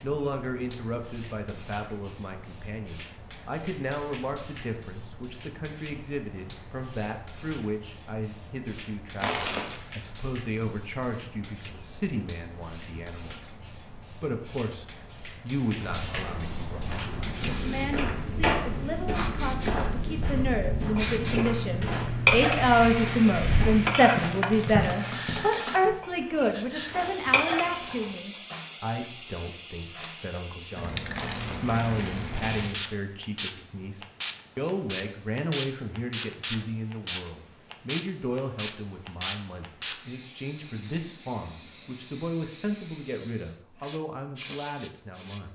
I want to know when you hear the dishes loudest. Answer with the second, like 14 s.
22 s.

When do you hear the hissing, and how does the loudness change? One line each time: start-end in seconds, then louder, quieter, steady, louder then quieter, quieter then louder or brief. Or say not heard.
0.0-45.4 louder.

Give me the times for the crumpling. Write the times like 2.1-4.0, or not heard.
9.2-9.8, 24.1-25.9, 31.1-32.6.